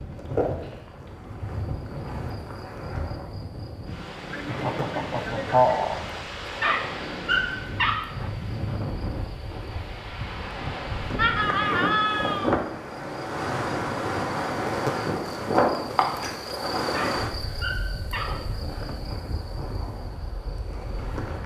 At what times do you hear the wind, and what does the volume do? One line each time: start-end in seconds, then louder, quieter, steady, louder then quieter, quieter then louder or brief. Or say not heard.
0.0-21.4 louder then quieter.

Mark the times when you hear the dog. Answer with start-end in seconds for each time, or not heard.
6.6-8.3, 16.9-18.6.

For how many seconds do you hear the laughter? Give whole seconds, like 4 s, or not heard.
3 s.